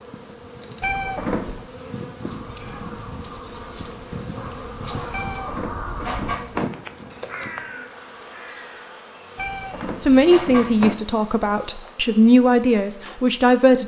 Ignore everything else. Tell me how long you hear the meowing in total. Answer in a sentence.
You can hear the meowing for 4 seconds altogether.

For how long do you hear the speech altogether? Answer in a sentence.
The speech can be heard for 4 seconds in total.